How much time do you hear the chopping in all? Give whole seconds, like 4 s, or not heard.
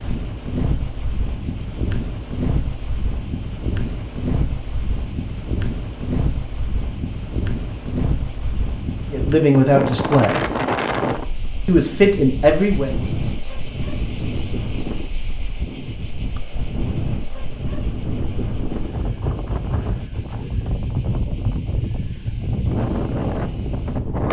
not heard.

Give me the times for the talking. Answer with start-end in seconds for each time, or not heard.
9.1-10.4, 11.7-12.9.